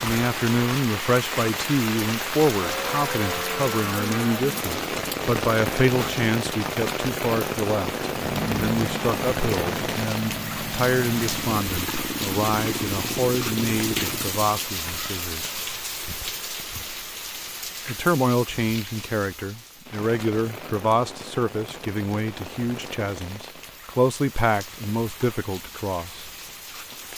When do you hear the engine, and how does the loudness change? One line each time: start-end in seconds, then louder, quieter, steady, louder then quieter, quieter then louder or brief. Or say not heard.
8.0-14.7 steady.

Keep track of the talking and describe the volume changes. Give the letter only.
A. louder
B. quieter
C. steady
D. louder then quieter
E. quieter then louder
C.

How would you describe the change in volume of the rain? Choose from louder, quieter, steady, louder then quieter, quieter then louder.
quieter.